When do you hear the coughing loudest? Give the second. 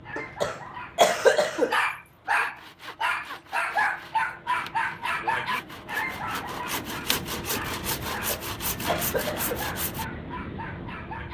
1 s.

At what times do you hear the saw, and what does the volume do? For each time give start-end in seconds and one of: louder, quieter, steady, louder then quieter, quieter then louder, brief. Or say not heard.
2.2-10.1 louder.